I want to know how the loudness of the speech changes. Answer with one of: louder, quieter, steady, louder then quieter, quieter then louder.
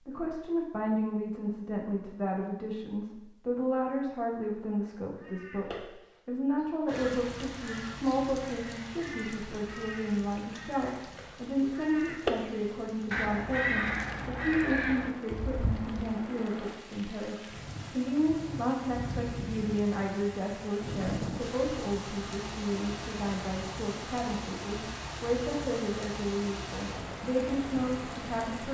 steady.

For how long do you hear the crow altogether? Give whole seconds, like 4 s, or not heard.
11 s.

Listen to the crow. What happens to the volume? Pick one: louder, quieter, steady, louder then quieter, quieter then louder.
louder.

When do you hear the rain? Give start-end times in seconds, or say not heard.
6.8-28.7.